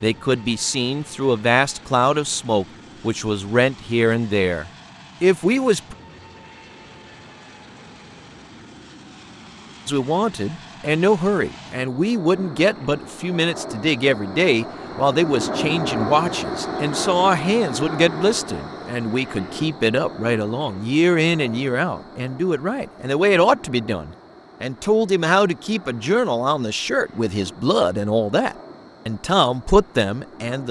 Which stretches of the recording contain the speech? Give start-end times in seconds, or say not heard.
0.0-6.0, 9.8-30.6.